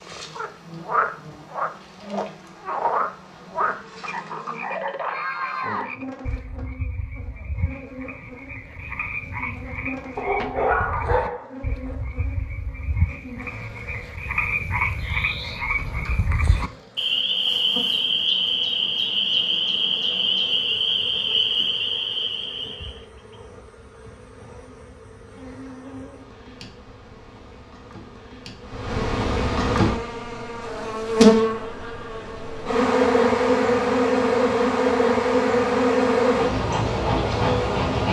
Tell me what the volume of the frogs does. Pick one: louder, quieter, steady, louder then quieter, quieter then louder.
quieter then louder.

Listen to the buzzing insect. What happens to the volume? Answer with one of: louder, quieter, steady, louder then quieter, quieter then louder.
louder.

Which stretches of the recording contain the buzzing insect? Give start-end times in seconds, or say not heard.
0.0-38.0.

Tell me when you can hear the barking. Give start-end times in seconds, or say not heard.
10.2-11.6.